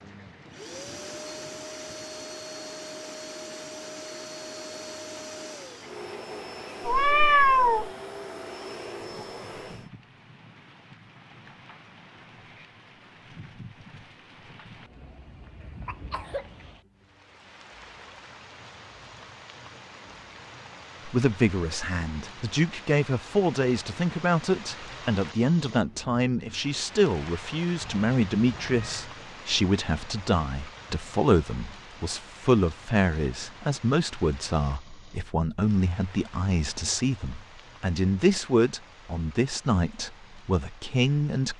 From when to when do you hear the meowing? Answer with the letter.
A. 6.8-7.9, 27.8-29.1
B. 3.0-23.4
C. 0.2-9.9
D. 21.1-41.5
A.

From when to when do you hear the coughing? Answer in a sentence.
The coughing can be heard from 15.6 to 16.5 s.